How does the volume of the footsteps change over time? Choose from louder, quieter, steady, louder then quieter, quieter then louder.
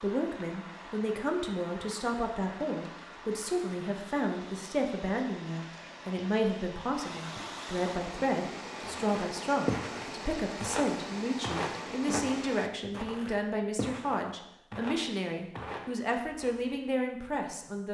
quieter.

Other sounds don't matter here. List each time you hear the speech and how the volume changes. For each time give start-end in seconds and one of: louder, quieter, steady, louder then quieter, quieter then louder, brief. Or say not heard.
0.0-17.8 steady.